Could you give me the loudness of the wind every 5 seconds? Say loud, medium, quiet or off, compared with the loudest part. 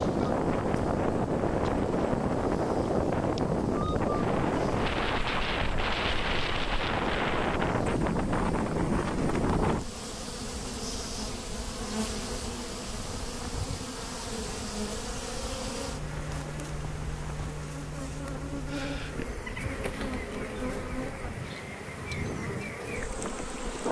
loud, loud, quiet, quiet, quiet.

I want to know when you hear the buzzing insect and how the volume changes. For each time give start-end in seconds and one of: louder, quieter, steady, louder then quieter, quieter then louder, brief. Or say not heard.
0.0-23.8 louder.